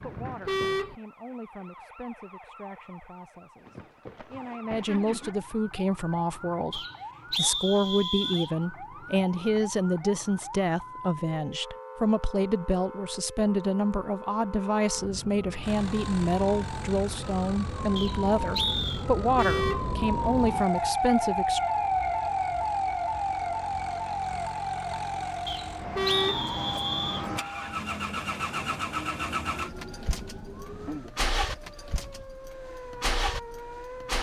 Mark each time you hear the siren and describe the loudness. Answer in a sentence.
The siren can be heard from 0.0 to 34.1 s, getting louder then quieter.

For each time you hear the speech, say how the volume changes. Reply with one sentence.
You can hear the speech from 0.0 to 21.6 s, getting louder.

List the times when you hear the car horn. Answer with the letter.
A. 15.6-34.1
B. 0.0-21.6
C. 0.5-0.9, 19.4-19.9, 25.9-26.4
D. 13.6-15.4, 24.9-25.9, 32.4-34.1
C.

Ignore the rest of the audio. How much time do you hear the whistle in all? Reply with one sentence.
You can hear the whistle for 5 seconds altogether.